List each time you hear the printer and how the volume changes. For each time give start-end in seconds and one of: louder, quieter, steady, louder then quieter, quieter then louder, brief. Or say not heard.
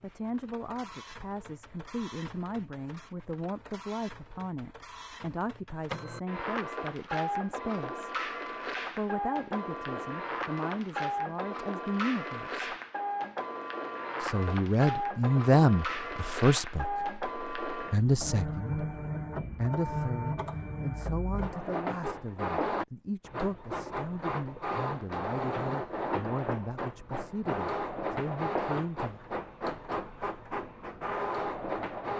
0.0-32.1 louder.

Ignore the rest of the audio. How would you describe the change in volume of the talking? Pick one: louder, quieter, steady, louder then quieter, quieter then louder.
louder then quieter.